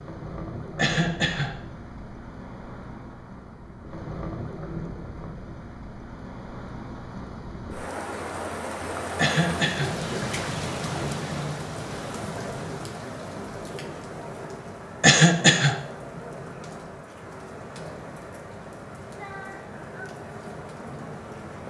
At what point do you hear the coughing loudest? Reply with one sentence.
The volume of the coughing peaks at 15 seconds.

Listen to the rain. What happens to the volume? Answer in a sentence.
The volume of the rain goes up, then down.